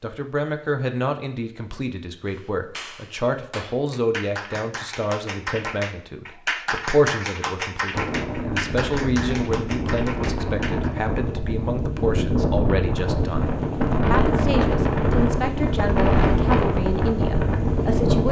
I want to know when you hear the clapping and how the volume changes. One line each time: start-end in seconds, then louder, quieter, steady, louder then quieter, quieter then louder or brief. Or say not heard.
2.2-10.9 louder then quieter.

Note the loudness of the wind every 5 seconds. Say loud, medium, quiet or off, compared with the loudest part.
off, medium, loud, loud.